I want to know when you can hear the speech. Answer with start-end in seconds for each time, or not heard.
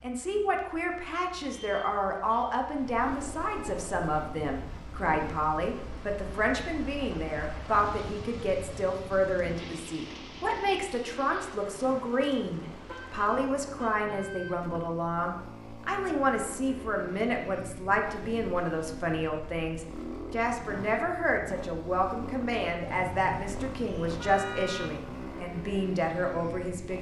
0.0-26.9.